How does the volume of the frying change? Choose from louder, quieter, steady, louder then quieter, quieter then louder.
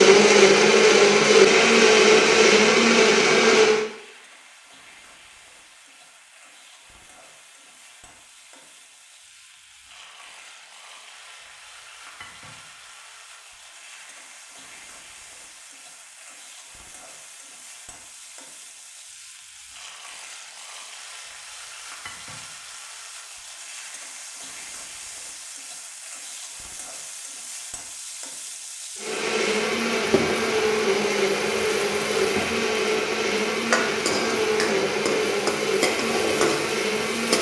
louder.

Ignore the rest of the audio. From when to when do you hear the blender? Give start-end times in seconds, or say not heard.
0.0-3.9, 28.9-37.3.